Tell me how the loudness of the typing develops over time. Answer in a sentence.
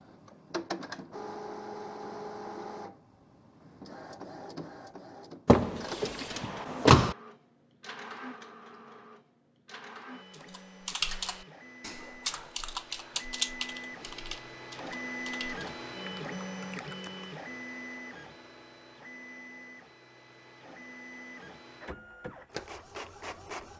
The loudness of the typing goes down.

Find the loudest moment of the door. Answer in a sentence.
The volume of the door peaks at 7 seconds.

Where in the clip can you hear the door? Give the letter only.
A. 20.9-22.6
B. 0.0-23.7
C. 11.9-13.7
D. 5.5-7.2
D.